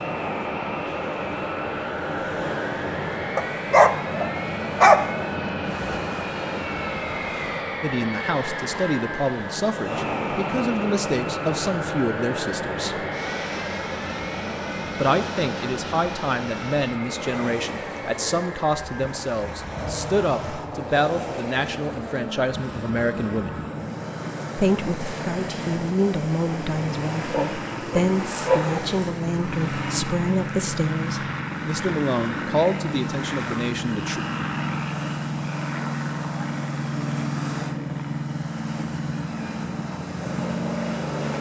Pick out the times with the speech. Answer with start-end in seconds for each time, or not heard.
7.8-13.1, 14.9-23.6, 24.6-34.2.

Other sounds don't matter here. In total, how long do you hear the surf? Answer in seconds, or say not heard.
41 s.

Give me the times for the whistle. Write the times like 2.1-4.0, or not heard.
not heard.